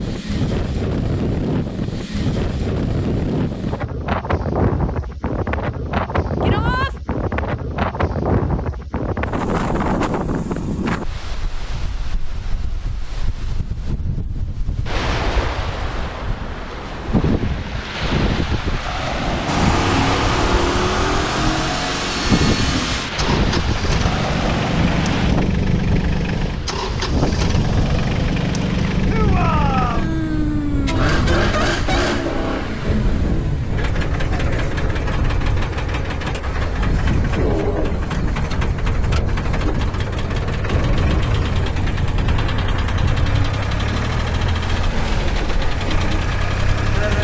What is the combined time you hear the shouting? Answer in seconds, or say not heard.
2 s.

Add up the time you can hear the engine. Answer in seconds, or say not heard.
28 s.